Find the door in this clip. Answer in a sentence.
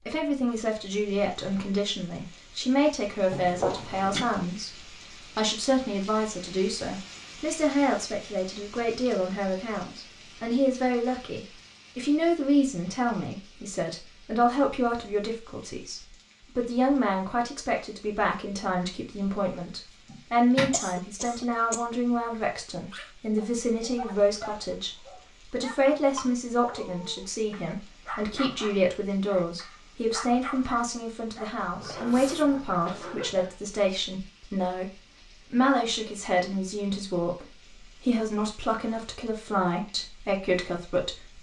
You can hear the door from 20.1 to 20.8 s.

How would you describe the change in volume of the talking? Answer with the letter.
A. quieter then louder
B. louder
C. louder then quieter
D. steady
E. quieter
D.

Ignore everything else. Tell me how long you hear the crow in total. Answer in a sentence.
You can't hear the crow here.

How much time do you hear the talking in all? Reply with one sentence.
The talking can be heard for 41 seconds in total.